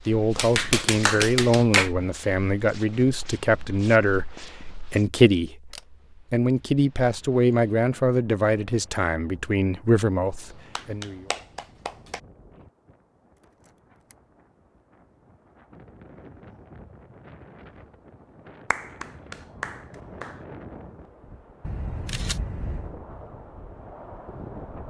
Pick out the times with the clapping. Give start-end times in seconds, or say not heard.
0.3-1.9, 10.8-12.2, 18.7-20.4.